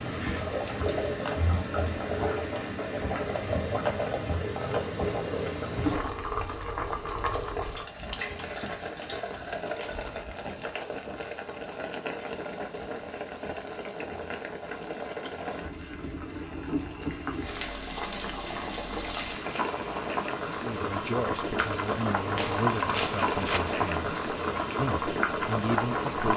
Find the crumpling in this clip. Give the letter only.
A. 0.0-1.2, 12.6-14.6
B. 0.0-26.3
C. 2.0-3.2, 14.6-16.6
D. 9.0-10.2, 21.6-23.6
D.